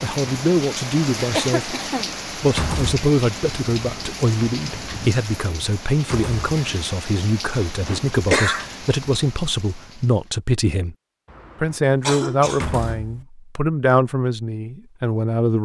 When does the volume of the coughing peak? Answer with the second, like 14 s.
8 s.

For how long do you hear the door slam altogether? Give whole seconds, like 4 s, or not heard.
2 s.